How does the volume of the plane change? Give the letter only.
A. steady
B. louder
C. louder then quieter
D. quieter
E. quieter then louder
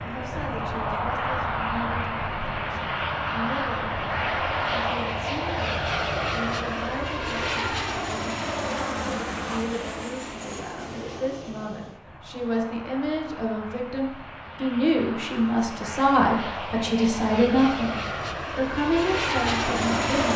E.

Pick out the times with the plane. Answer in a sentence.
The plane can be heard from 0.0 to 20.3 s.